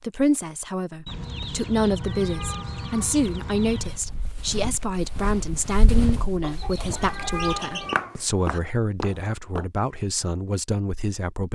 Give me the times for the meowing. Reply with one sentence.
The meowing can be heard from 2.0 to 3.1 s and from 7.0 to 8.6 s.